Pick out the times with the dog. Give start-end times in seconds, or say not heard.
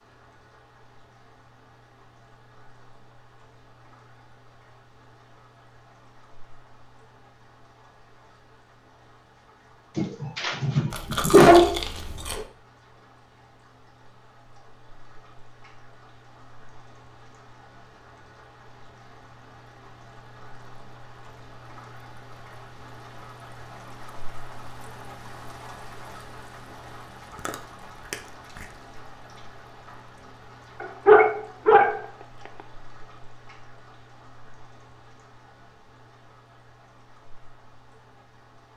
9.9-11.8, 30.8-32.0.